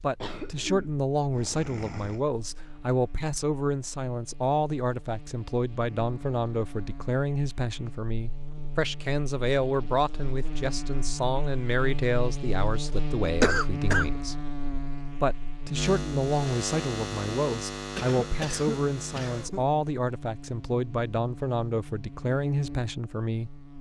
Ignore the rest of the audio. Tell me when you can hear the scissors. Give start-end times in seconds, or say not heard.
not heard.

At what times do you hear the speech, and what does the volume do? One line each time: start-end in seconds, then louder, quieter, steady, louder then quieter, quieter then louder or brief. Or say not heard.
0.0-14.3 steady
15.2-23.5 steady.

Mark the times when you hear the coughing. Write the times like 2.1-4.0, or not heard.
0.1-2.2, 13.4-14.1, 17.9-19.6.